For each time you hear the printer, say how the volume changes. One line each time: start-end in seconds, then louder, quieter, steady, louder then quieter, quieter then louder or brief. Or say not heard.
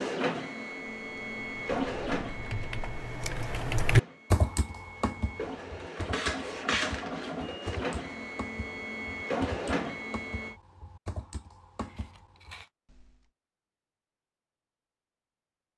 0.0-10.6 quieter then louder.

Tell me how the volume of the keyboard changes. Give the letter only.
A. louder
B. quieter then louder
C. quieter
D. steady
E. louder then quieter
E.